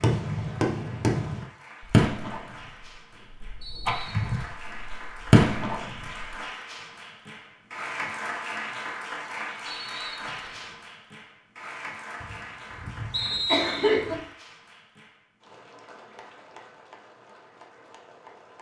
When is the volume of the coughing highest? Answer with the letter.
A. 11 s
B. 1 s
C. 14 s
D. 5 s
C.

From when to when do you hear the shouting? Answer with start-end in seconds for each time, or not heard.
not heard.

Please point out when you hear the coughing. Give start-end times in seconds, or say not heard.
3.9-4.4, 12.2-14.2.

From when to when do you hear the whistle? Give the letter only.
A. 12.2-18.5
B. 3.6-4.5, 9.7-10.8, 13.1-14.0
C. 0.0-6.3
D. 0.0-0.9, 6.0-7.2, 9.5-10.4
B.